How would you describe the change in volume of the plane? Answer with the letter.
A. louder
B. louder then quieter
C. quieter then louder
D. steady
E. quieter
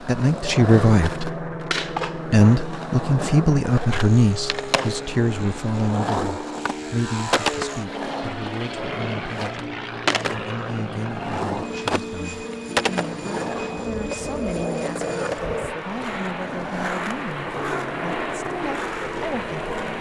D.